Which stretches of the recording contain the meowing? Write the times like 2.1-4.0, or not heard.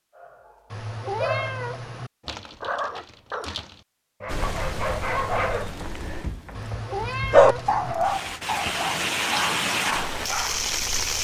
0.7-2.1, 6.5-8.0.